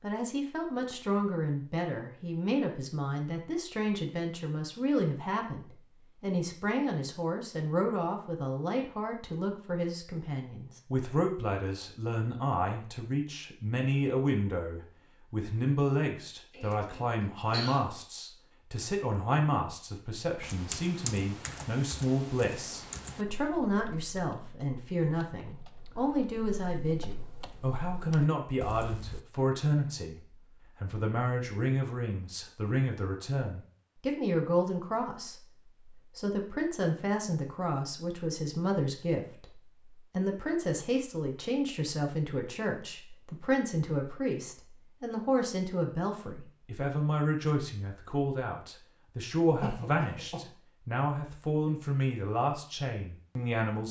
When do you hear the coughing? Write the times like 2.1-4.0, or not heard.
16.5-17.9, 49.6-50.5.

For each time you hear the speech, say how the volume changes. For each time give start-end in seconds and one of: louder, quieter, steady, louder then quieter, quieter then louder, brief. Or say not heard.
0.0-53.8 steady.